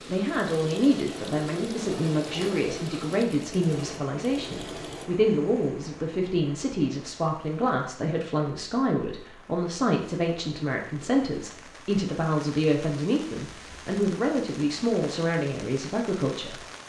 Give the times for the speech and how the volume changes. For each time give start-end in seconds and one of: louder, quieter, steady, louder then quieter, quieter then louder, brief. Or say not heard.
0.1-16.6 steady.